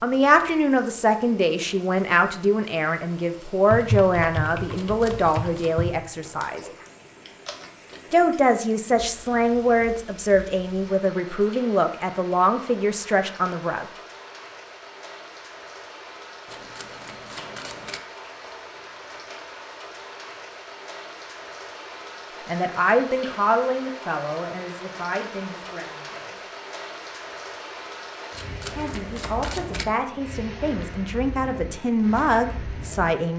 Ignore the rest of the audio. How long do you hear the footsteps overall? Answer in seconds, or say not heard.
not heard.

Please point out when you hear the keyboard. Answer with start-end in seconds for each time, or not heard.
3.7-8.8.